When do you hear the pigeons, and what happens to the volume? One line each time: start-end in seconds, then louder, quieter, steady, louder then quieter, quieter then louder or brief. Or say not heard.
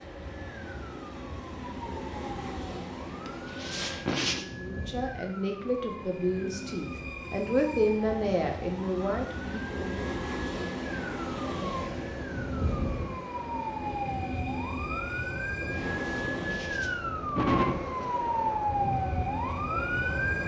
not heard.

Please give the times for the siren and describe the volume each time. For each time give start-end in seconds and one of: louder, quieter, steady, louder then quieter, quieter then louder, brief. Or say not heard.
0.0-20.4 louder.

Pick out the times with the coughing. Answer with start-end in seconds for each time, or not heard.
3.2-4.5, 15.9-18.1.